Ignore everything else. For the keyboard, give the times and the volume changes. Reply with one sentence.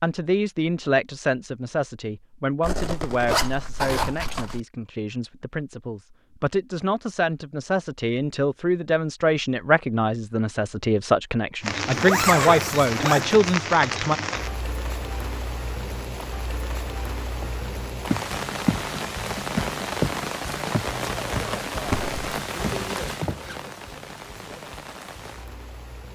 The keyboard can't be heard in this clip.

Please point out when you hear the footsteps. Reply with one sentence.
The footsteps can be heard from 17.4 to 18.9 s and from 19.6 to 23.6 s.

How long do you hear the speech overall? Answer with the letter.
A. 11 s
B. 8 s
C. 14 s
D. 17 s
C.